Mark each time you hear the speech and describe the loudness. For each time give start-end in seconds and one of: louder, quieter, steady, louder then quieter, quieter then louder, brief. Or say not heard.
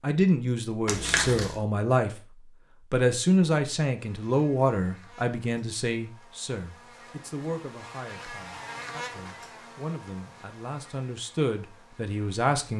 0.0-2.2 brief
2.9-12.7 quieter then louder.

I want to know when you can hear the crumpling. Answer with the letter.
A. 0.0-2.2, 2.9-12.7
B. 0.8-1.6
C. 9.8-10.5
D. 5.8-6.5
B.